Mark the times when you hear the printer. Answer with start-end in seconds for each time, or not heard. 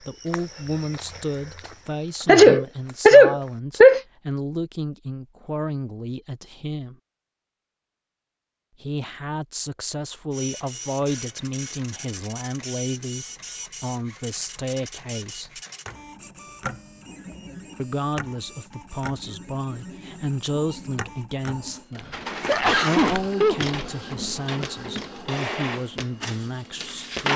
10.3-27.3.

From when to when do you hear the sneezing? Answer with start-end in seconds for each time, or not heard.
2.2-4.0, 22.4-24.4.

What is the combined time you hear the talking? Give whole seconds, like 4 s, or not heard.
23 s.